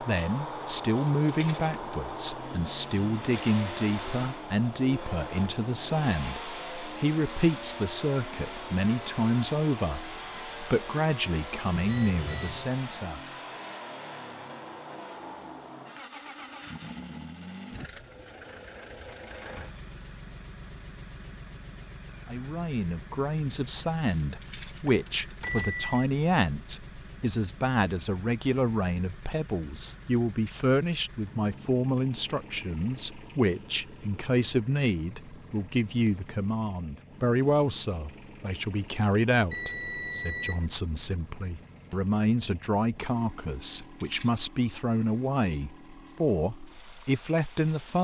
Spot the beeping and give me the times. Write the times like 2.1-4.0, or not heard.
11.8-12.7, 25.4-26.1, 39.5-40.7.